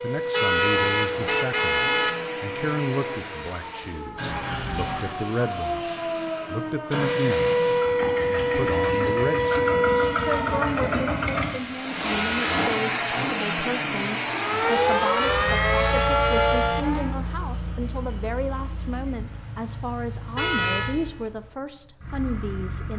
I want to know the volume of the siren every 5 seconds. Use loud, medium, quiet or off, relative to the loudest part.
medium, loud, loud, loud, off.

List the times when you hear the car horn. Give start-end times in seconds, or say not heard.
0.3-2.1, 12.1-12.6, 20.4-20.9.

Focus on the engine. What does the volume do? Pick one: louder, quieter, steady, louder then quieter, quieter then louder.
louder then quieter.